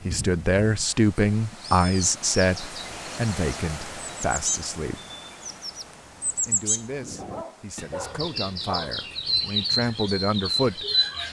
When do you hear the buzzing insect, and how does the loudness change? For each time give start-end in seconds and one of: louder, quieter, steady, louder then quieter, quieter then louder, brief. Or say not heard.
not heard.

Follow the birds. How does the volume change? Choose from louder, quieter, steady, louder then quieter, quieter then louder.
louder.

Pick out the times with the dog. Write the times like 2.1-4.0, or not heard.
7.2-9.1.